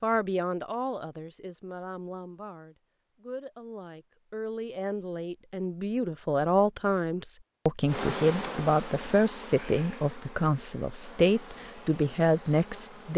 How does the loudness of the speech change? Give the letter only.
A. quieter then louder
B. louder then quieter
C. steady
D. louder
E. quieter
D.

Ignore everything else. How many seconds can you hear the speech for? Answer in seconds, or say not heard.
13 s.